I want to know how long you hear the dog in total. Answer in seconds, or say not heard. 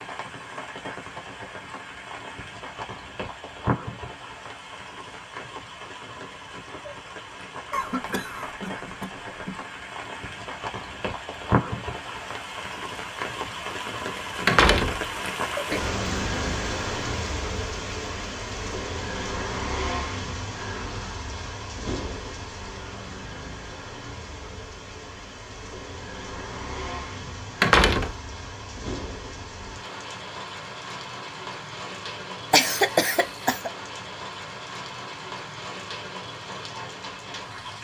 not heard.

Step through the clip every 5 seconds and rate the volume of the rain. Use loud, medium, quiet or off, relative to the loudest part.
medium, medium, loud, loud, medium, medium, medium, medium.